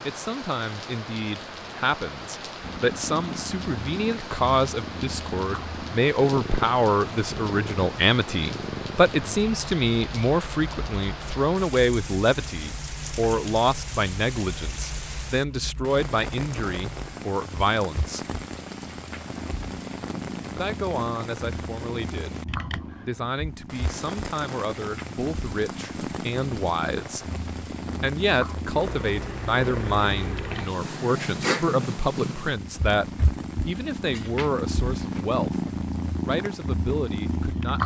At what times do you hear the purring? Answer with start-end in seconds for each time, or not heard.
2.6-37.8.